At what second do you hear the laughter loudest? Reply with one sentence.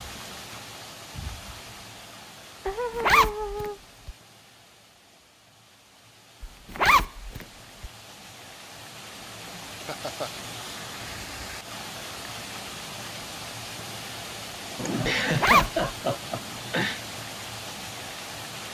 The volume of the laughter peaks at 15 seconds.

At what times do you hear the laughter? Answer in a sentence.
You can hear the laughter from 2.6 to 3.8 s, from 9.7 to 10.3 s and from 14.8 to 17.0 s.